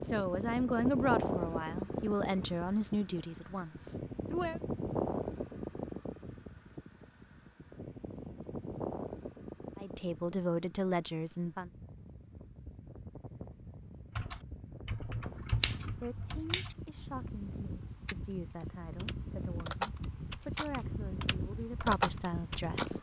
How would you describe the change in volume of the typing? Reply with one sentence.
The loudness of the typing goes down, then up.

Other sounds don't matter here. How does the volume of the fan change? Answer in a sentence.
The volume of the fan goes down, then up.